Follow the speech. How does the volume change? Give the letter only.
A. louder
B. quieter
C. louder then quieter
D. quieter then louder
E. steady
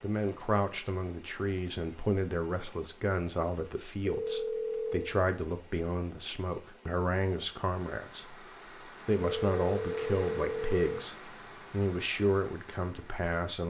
E.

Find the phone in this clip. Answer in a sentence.
You can hear the phone from 4.0 to 5.2 s and from 9.2 to 11.0 s.